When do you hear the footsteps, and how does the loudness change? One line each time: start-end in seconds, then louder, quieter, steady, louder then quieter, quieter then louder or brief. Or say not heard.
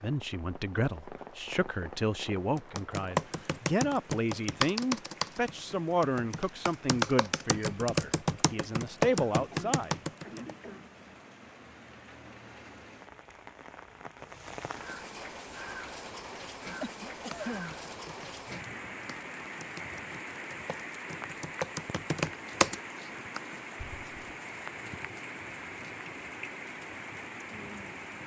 not heard.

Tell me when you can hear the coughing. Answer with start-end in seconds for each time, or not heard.
9.3-10.9, 16.8-17.8.